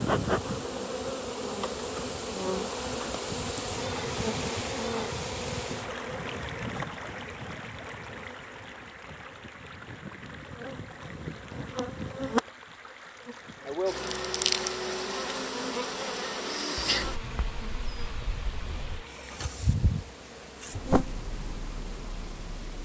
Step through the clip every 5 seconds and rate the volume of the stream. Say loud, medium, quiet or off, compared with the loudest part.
loud, loud, medium, medium, medium.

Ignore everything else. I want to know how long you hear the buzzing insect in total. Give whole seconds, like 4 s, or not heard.
23 s.